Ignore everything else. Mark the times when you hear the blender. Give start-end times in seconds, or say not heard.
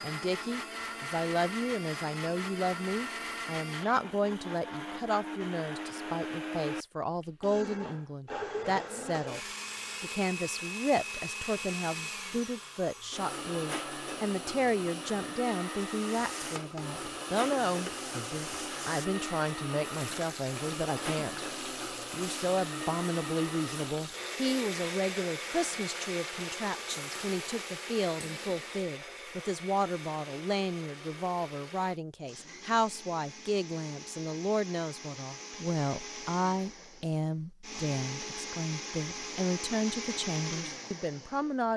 0.0-41.6.